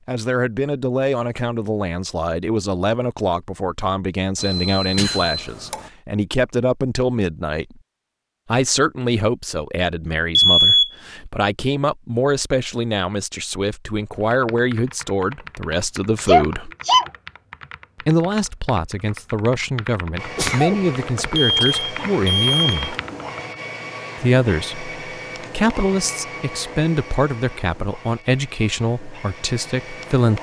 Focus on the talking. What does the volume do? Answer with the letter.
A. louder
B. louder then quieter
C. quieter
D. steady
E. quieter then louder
D.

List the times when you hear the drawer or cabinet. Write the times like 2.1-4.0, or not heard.
not heard.